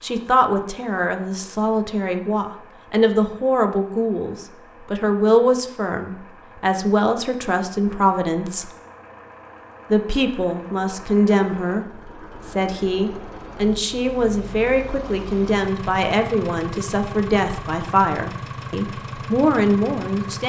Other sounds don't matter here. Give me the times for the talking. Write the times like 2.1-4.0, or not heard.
0.0-8.7, 9.9-11.8, 12.4-20.4.